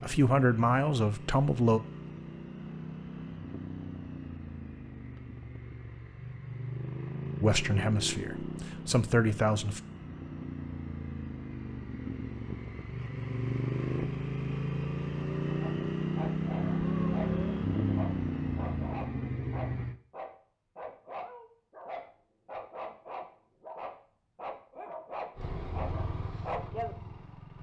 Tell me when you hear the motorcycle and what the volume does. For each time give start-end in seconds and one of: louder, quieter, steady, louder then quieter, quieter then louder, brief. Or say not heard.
0.0-19.9 louder
25.4-27.5 brief.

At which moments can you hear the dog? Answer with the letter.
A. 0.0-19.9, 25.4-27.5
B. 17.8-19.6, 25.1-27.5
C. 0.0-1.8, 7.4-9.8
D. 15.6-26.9
D.